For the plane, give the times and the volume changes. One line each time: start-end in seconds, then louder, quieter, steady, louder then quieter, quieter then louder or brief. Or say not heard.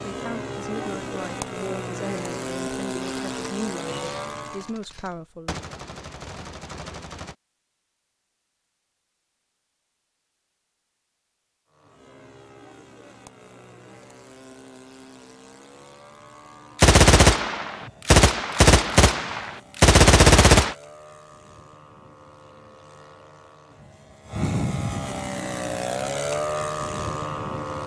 0.0-4.8 steady
11.7-27.8 louder.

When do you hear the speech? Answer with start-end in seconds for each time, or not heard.
0.1-5.6.